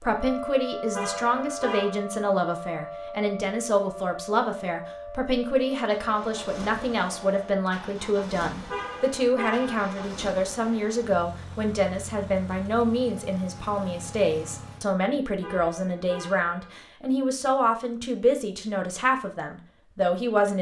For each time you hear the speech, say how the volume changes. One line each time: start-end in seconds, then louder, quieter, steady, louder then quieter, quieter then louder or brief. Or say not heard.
0.0-20.5 steady.